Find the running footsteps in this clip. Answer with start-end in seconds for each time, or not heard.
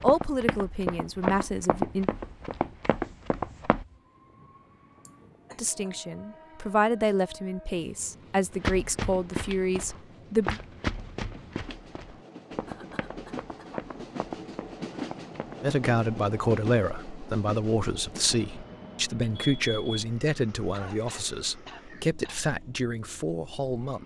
0.0-3.9, 8.5-15.7.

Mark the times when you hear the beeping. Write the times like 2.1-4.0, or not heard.
19.4-20.1.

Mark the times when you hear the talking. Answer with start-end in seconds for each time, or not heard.
0.0-2.1, 5.5-10.6, 15.6-24.0.